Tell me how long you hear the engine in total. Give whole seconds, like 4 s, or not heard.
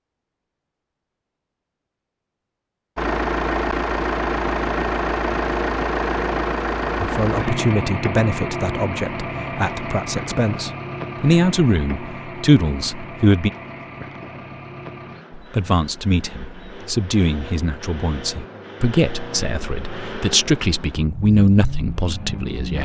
20 s.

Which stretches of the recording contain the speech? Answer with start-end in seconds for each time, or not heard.
7.0-13.5, 15.3-22.8.